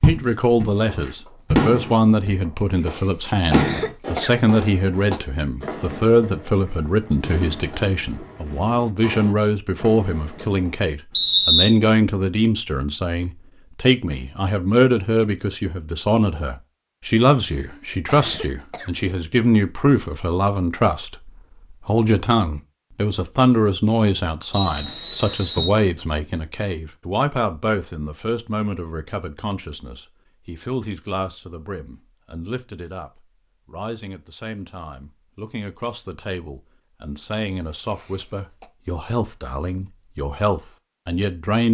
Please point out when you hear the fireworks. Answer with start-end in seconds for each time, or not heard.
0.8-2.0, 2.9-10.8.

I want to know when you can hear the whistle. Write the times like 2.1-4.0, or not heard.
11.1-11.8, 24.5-25.7.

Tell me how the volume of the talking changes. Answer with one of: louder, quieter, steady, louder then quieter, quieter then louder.
quieter.